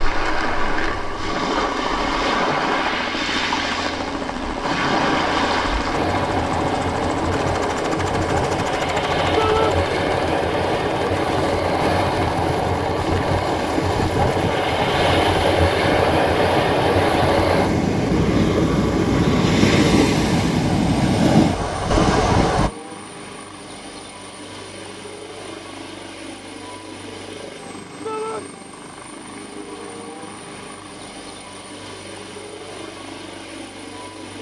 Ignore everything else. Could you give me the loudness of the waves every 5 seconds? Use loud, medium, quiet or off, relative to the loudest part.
medium, medium, loud, loud, loud, off, off.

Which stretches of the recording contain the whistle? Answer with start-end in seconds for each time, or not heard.
not heard.